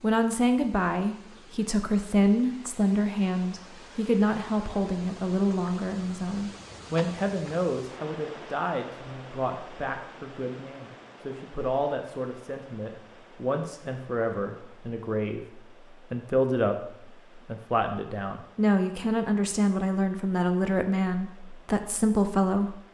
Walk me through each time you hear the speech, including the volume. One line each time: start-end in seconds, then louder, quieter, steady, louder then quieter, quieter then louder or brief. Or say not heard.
0.0-22.8 quieter then louder.